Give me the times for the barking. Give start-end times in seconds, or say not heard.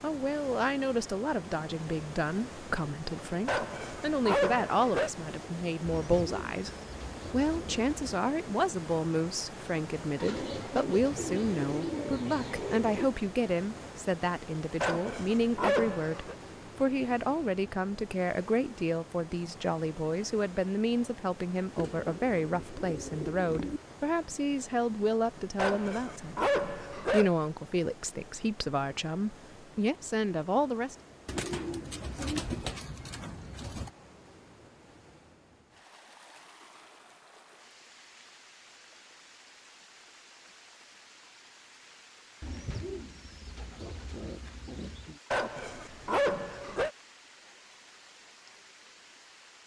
3.5-5.1, 14.8-16.4, 25.6-27.4, 45.3-46.9.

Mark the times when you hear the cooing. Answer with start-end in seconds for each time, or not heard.
5.8-8.0, 10.2-13.1, 21.8-23.8, 31.2-33.9, 42.4-45.2.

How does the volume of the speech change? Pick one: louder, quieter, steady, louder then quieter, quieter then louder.
steady.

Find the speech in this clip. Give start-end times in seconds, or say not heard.
0.0-6.7, 7.3-30.9.